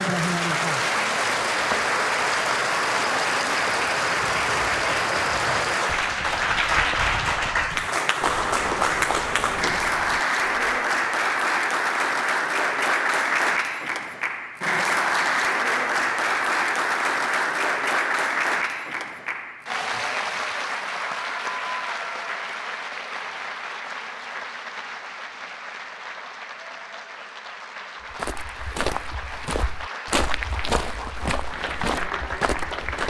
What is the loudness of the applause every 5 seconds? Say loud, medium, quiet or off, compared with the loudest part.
loud, loud, loud, loud, medium, quiet, medium.